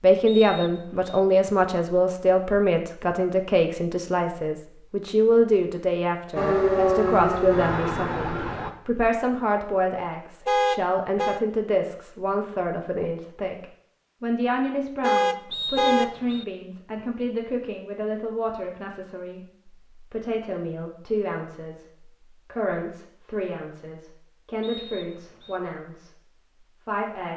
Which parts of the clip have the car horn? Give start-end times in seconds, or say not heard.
10.4-11.4, 15.0-16.1.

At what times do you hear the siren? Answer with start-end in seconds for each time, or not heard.
6.3-8.7.